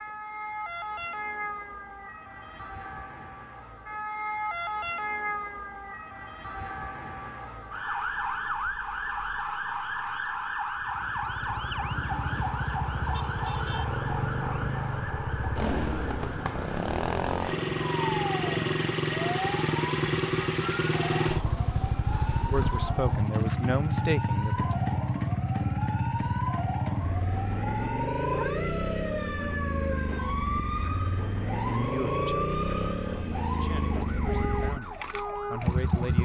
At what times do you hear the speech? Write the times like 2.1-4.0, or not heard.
22.5-24.8, 31.6-36.1.